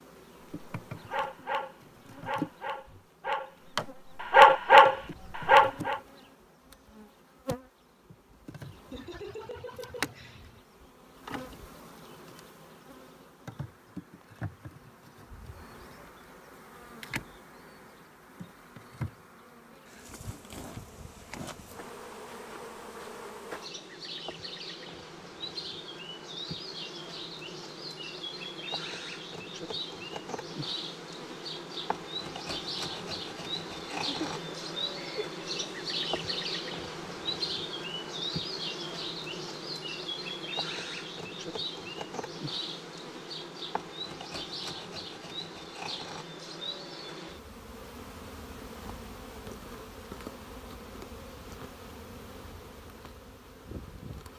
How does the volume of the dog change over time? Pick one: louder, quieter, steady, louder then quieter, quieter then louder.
louder.